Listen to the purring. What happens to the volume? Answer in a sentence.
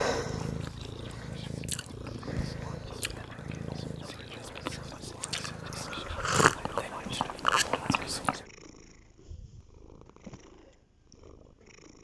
The loudness of the purring goes down.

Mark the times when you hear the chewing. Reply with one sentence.
You can hear the chewing from 0.3 to 8.4 s.